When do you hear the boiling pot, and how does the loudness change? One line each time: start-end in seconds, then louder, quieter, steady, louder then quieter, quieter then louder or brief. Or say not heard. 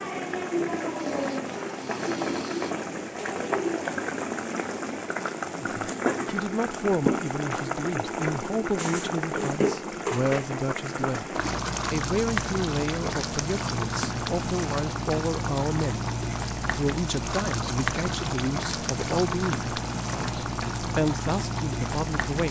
0.0-22.4 steady.